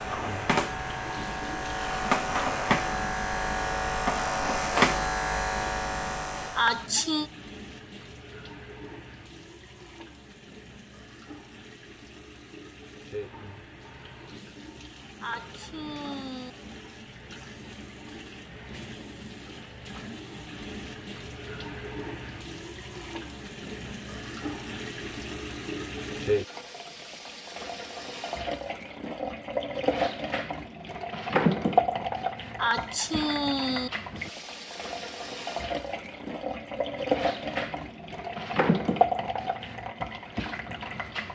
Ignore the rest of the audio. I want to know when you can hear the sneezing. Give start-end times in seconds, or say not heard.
6.5-7.3, 15.2-16.5, 32.5-33.9.